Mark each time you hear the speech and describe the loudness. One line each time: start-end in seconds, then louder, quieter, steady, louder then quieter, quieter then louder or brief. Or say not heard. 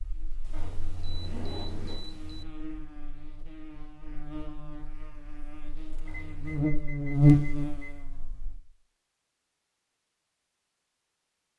not heard.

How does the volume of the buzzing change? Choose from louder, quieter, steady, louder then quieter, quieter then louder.
louder.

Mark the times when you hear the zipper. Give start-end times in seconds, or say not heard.
0.5-2.5, 6.0-6.6.